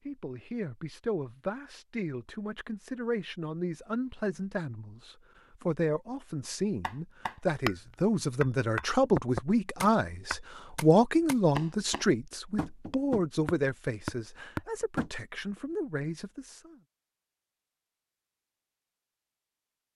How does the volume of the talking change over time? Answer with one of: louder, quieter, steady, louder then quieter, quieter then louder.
louder then quieter.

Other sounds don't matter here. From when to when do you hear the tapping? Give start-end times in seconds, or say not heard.
6.8-15.1.